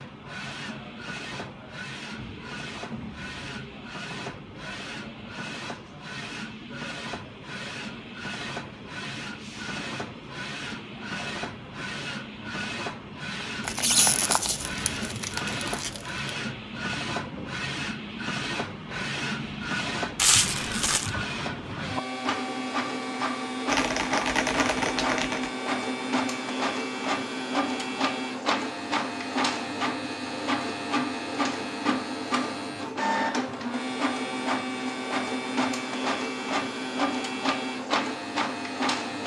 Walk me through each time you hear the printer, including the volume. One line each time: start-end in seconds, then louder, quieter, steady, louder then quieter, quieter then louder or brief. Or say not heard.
0.0-39.2 louder.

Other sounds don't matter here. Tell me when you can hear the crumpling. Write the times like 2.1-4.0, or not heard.
13.6-16.3, 20.1-21.1.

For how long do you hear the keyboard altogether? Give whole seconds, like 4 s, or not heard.
2 s.